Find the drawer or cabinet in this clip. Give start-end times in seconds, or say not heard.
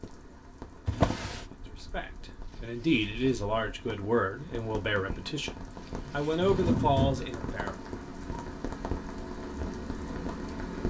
0.8-1.4, 6.0-7.3.